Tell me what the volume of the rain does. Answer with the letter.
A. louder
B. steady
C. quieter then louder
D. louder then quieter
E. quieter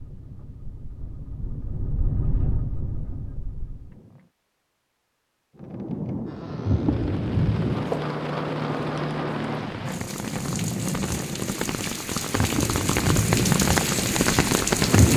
A.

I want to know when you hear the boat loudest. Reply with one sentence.
The volume of the boat peaks at 15 seconds.